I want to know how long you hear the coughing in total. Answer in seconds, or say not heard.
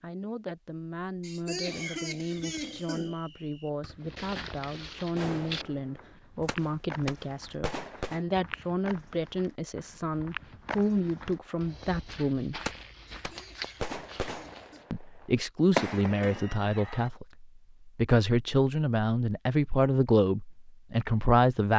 4 s.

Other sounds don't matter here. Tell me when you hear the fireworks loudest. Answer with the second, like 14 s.
16 s.